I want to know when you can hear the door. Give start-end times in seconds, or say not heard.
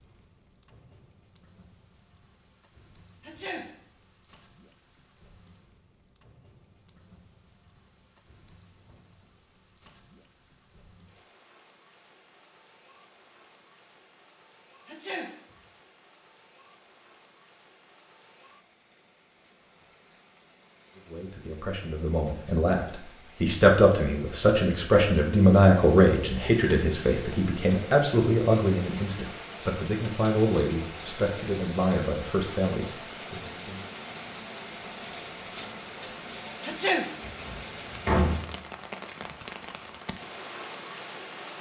37.2-38.4.